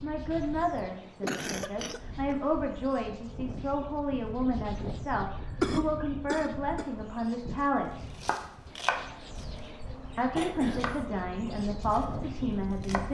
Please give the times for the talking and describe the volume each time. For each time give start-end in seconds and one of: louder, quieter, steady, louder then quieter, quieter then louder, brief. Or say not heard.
0.0-8.1 steady
10.2-13.0 brief.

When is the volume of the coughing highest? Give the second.
6 s.